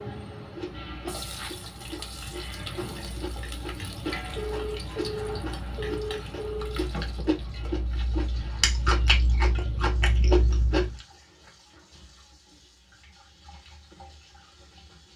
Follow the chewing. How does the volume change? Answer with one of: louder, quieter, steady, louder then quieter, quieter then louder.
louder.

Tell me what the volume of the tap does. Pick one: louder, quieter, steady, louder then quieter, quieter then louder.
quieter.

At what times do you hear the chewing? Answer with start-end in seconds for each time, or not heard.
0.5-11.0.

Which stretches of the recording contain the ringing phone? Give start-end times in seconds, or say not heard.
4.3-6.8.